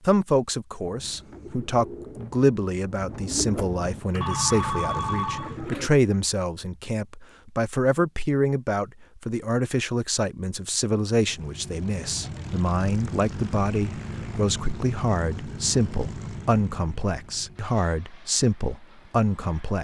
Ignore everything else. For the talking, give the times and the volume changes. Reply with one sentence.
You can hear the talking from 0.1 to 19.8 s, at a steady volume.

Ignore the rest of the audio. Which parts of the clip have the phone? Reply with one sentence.
The phone can be heard from 4.2 to 5.9 s.